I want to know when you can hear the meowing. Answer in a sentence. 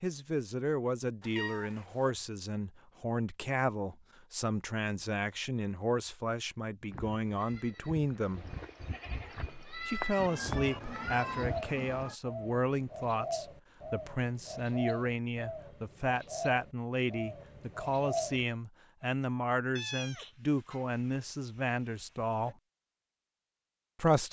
You can hear the meowing from 1.2 to 2.1 s, from 10.2 to 12.2 s and from 19.8 to 22.6 s.